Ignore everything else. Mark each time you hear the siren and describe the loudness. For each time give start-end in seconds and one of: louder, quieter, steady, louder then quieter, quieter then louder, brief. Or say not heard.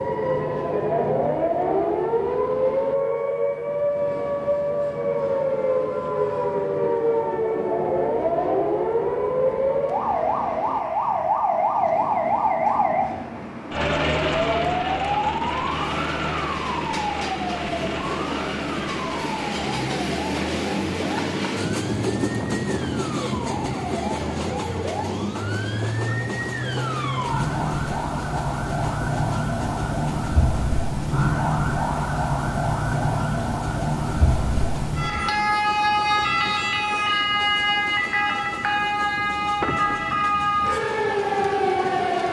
0.0-42.2 quieter then louder.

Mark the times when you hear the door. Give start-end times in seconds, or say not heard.
39.6-40.1.